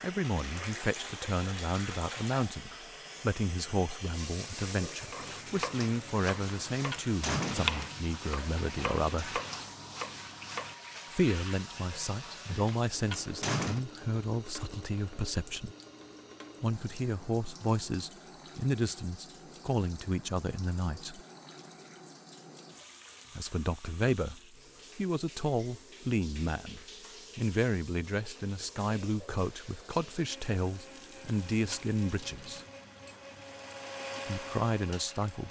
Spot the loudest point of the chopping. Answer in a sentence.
The loudest moment of the chopping is at 8 seconds.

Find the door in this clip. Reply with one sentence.
You can hear the door from 6.5 to 8.0 s, from 12.7 to 13.8 s and from 31.2 to 31.9 s.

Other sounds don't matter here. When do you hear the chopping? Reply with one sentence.
The chopping can be heard from 5.1 to 10.8 s.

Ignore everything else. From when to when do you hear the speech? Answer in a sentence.
The speech can be heard from 0.0 to 9.4 s, from 11.1 to 15.8 s, from 16.6 to 21.2 s, from 23.4 to 32.6 s and from 34.2 to 35.4 s.